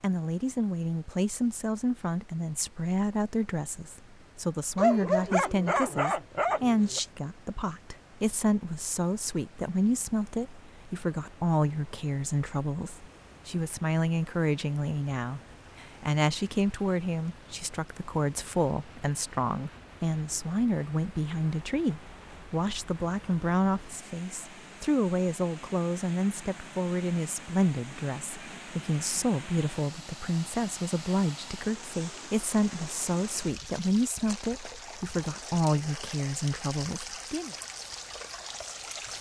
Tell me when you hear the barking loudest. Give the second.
5 s.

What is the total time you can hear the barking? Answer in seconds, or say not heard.
2 s.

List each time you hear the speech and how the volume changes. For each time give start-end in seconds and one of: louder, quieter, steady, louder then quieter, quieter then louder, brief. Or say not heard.
0.0-37.5 steady.